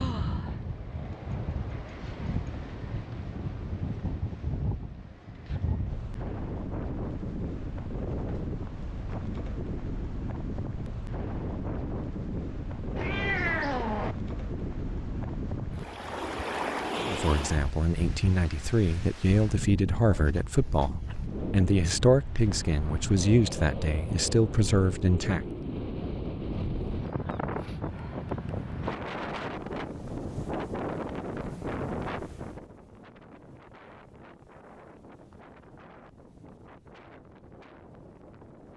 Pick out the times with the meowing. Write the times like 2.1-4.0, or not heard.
12.9-14.2, 20.1-21.4.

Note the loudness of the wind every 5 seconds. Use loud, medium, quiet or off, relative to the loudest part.
loud, loud, loud, loud, loud, loud, loud, quiet.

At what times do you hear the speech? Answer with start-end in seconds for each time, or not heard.
17.1-25.4.